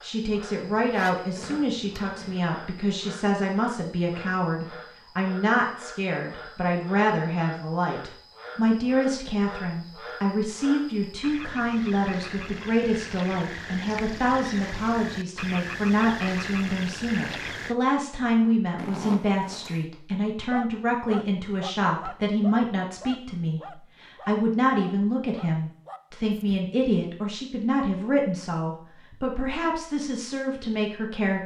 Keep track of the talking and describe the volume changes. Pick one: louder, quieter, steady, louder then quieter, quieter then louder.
steady.